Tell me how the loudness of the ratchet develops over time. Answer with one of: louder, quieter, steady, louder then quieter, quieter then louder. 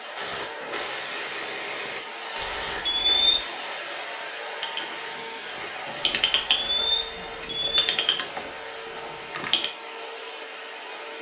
quieter then louder.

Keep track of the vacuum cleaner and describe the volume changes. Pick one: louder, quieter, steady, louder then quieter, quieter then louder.
steady.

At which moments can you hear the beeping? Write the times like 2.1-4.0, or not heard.
2.4-3.4, 6.0-7.8.